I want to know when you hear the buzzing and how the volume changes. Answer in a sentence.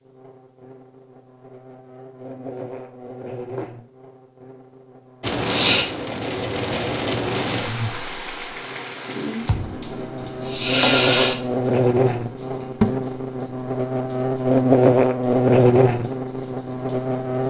The buzzing can be heard from 0.0 to 17.4 s, getting louder.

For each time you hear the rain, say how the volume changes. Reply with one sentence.
The rain can be heard from 5.2 to 17.4 s, getting quieter.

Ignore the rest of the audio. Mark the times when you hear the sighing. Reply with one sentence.
The sighing can be heard from 5.4 to 5.8 s and from 10.4 to 11.3 s.